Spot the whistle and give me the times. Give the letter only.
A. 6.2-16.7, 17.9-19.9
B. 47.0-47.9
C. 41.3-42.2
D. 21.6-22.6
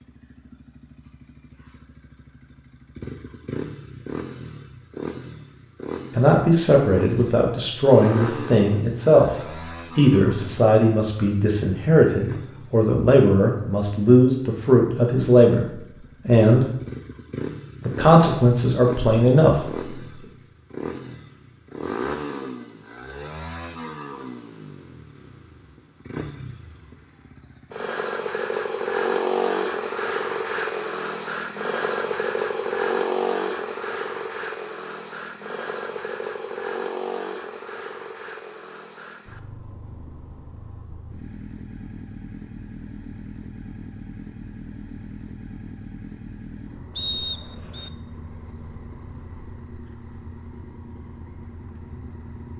B.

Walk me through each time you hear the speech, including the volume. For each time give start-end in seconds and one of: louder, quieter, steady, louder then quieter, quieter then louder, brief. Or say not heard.
6.2-16.7 steady
17.9-19.9 brief.